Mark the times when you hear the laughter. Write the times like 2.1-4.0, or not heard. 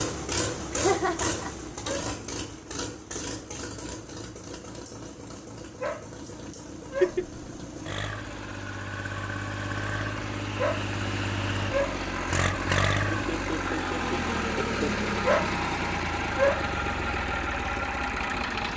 0.7-2.1, 7.0-7.4, 13.1-15.1.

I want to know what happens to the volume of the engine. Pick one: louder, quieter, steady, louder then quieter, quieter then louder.
quieter then louder.